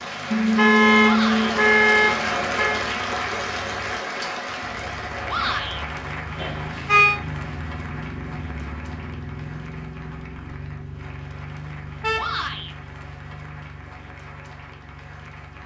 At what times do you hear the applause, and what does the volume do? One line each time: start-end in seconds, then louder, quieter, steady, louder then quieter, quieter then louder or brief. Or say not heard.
0.0-15.6 quieter.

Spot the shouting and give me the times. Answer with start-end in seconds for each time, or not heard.
1.0-1.6, 5.2-5.8, 12.2-12.8.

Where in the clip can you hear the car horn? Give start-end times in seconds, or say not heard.
0.3-2.8, 6.3-7.2, 12.0-12.4.